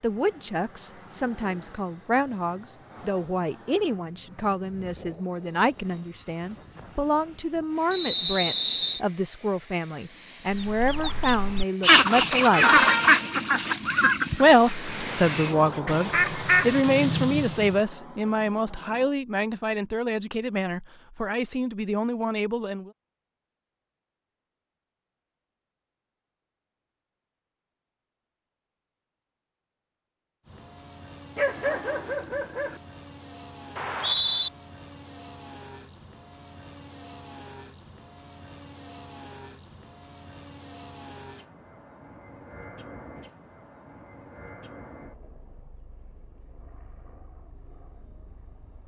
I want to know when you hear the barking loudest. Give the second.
32 s.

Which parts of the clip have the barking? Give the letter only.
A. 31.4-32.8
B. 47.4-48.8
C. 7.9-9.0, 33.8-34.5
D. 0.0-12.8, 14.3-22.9
A.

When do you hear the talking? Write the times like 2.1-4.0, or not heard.
0.0-12.8, 14.3-22.9.